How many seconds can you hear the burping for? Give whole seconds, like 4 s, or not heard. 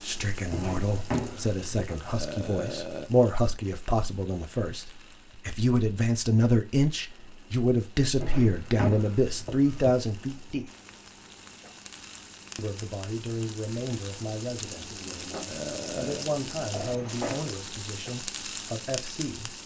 2 s.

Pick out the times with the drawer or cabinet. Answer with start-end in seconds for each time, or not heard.
0.5-2.0, 8.2-9.9, 16.7-17.5.